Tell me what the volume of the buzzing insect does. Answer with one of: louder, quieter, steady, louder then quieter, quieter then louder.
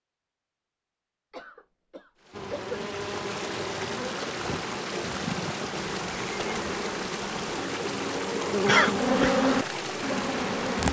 louder.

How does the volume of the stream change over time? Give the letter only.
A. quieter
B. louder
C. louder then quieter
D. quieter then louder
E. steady
E.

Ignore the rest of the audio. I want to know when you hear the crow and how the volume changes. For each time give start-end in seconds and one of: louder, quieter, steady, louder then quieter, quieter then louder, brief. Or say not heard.
not heard.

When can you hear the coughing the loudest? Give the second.
9 s.